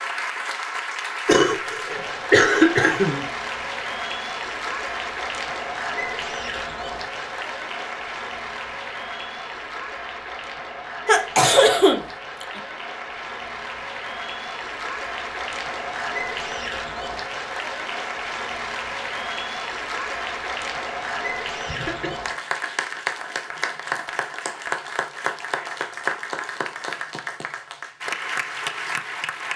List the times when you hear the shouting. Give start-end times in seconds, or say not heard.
not heard.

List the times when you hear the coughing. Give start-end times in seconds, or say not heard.
1.2-3.2, 11.1-12.6, 21.6-22.1.